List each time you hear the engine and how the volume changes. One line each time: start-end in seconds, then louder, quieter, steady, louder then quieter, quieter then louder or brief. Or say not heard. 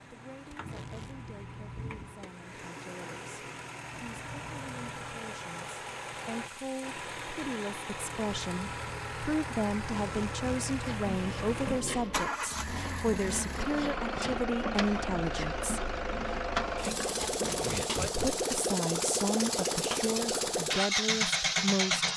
0.0-22.1 louder.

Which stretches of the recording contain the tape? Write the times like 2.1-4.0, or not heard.
0.5-1.3, 9.8-10.7, 17.2-18.4.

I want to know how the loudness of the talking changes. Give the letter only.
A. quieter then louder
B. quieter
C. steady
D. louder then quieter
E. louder
E.